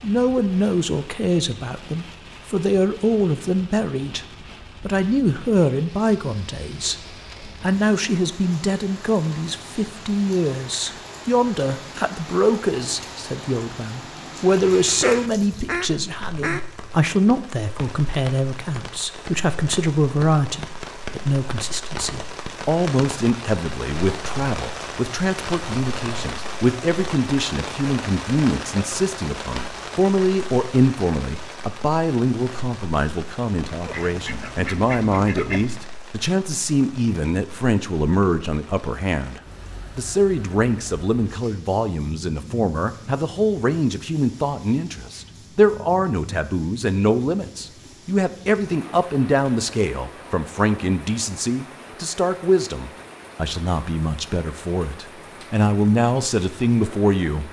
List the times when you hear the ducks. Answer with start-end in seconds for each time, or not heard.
14.8-16.9, 33.9-35.7.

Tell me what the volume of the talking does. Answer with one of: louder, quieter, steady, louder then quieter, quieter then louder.
steady.